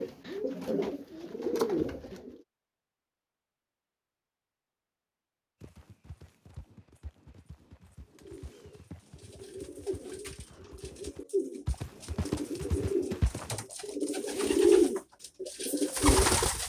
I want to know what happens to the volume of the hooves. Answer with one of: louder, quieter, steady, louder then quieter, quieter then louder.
louder.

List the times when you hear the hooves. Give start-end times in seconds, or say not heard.
5.6-13.5.